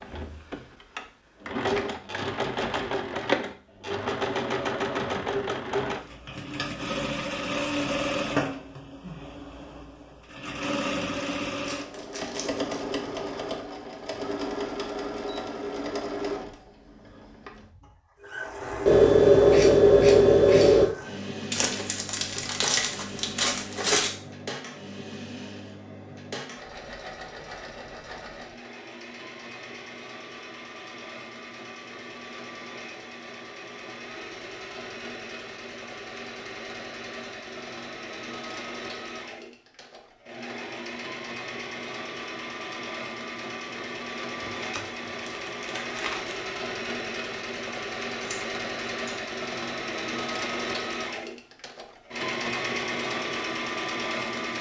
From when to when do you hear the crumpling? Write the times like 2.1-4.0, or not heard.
11.7-12.8, 21.5-24.1, 44.4-46.4.